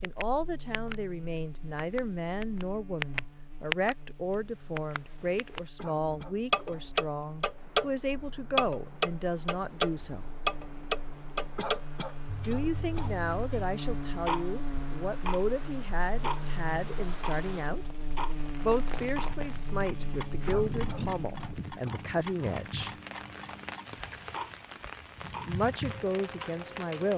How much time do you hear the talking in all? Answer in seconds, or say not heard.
22 s.